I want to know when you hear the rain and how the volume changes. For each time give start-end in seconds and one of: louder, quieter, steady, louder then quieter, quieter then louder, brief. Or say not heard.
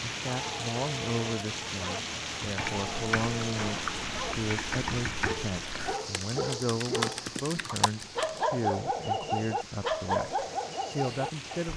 0.0-11.7 quieter.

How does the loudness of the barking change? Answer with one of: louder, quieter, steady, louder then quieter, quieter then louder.
louder.